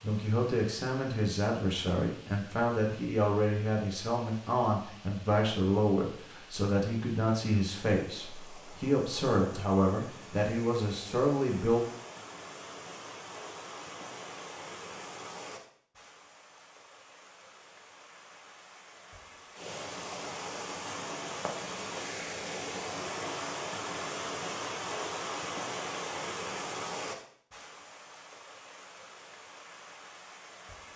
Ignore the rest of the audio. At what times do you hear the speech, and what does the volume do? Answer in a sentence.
You can hear the speech from 0.0 to 11.8 s, at a steady volume.